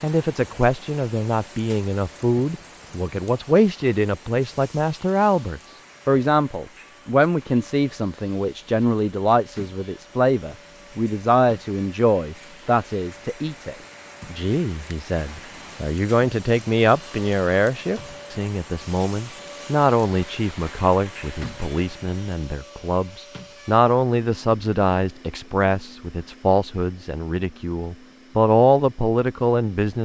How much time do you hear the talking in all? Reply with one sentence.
The talking can be heard for 30 seconds in total.